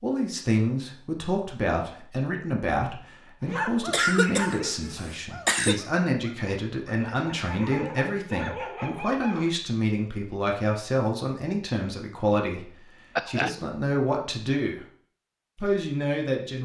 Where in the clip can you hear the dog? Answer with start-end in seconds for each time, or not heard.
3.4-9.5.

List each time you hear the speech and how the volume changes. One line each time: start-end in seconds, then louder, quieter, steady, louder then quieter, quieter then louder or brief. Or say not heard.
0.0-14.8 steady
15.6-16.6 brief.